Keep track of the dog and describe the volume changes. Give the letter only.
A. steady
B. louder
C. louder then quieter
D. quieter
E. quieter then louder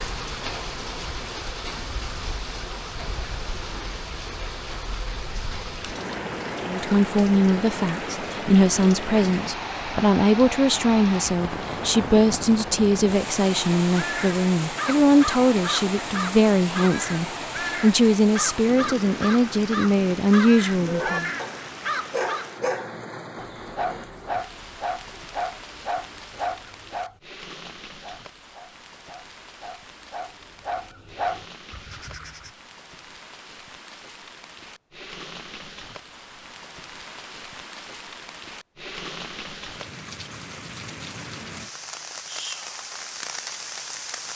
E.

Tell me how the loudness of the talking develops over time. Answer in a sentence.
The volume of the talking stays about the same.